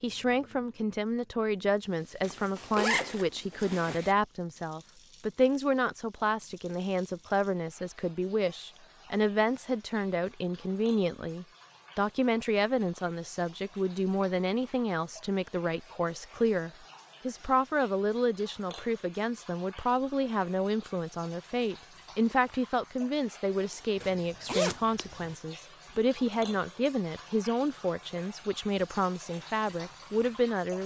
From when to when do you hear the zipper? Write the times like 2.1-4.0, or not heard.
2.2-4.2, 24.0-25.4.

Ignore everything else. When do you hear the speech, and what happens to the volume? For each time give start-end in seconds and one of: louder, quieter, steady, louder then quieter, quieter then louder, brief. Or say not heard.
0.0-30.8 steady.